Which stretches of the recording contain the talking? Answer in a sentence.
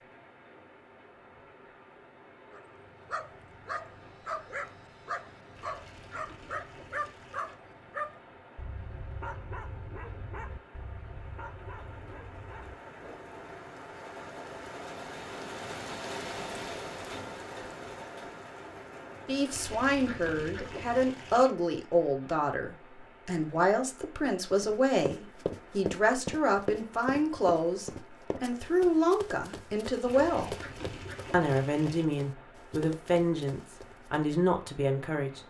The talking can be heard from 19.2 to 30.6 s and from 31.3 to 35.4 s.